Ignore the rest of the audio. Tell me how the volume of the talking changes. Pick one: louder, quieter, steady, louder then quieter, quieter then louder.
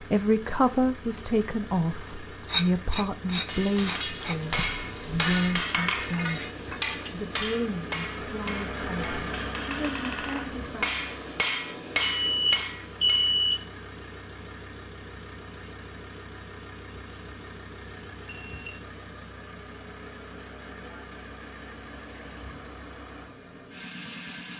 quieter.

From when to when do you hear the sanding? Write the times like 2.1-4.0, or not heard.
2.4-4.4.